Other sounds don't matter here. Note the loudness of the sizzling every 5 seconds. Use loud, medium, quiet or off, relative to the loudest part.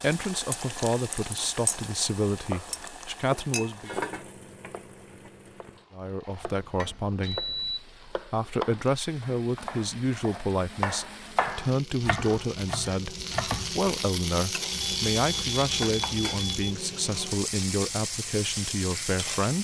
medium, quiet, loud, loud.